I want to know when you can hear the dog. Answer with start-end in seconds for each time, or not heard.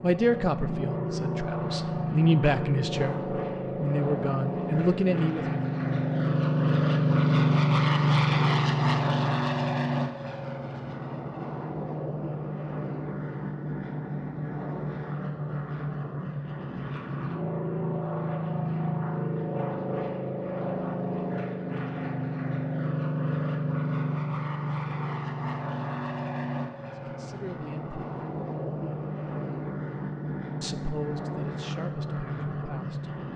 not heard.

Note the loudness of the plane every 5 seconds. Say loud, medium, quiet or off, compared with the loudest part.
medium, loud, medium, medium, medium, medium, medium.